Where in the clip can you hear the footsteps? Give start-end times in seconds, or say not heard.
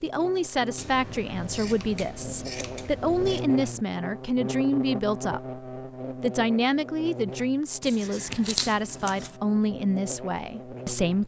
not heard.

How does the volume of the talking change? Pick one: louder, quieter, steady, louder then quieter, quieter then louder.
steady.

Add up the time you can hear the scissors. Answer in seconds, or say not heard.
4 s.